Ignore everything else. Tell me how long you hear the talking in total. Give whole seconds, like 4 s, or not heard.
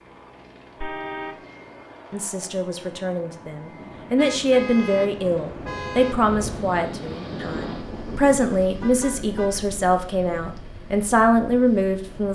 10 s.